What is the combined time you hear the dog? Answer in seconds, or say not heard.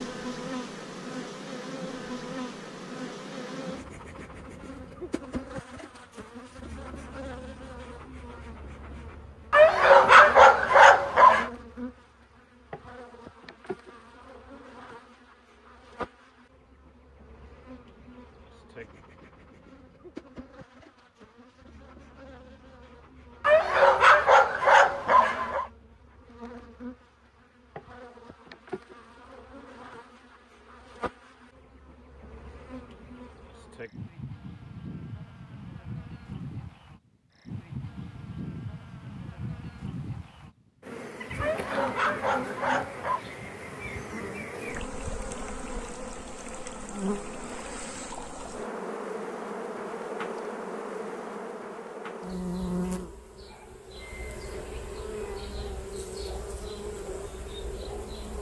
6 s.